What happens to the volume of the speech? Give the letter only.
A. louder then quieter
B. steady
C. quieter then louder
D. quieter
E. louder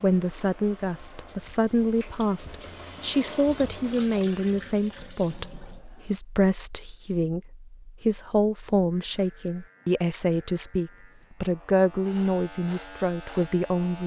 B.